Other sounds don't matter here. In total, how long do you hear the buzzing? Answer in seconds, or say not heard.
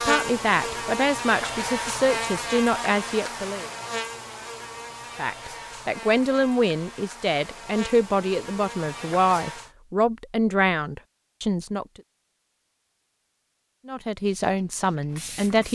10 s.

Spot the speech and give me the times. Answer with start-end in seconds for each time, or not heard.
0.1-3.6, 5.2-12.0, 13.8-15.7.